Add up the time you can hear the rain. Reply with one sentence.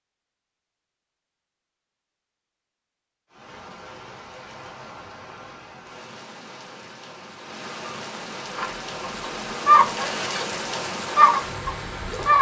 You can hear the rain for 9 seconds altogether.